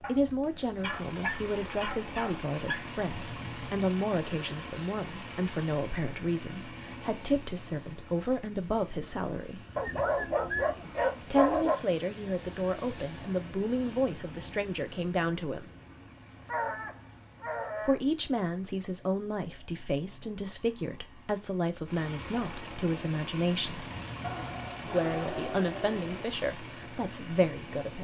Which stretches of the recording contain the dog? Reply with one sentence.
You can hear the dog from 0.0 to 2.9 s, from 9.8 to 11.8 s, from 16.4 to 18.0 s and from 24.2 to 26.2 s.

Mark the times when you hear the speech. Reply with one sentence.
You can hear the speech from 0.0 to 9.7 s, from 11.2 to 15.7 s, from 17.9 to 23.9 s and from 24.8 to 27.9 s.